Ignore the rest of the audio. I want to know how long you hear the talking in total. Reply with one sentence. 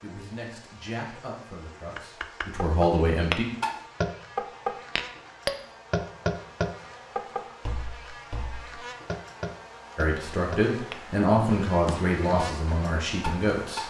You can hear the talking for 7 seconds altogether.